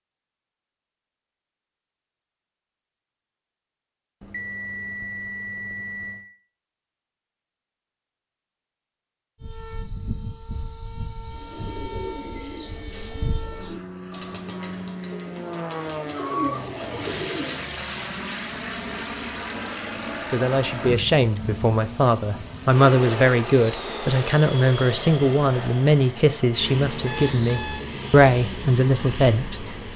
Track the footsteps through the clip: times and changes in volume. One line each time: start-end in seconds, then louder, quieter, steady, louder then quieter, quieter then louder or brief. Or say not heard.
not heard.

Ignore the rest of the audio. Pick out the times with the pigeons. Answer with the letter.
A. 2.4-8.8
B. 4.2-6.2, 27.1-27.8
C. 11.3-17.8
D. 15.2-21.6
C.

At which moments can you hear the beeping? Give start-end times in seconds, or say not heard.
4.2-6.2, 27.1-27.8.